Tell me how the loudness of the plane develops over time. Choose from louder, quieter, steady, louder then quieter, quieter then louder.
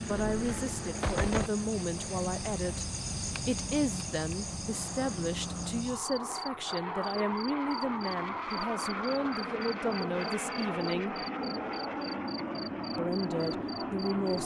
louder.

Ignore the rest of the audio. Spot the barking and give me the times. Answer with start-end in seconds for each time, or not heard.
not heard.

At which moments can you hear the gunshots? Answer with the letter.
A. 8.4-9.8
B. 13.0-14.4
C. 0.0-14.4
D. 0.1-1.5
D.